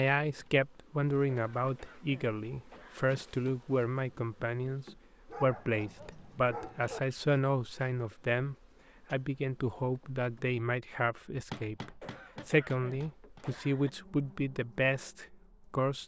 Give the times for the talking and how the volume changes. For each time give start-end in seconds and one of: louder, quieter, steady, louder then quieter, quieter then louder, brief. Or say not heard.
0.0-16.0 steady.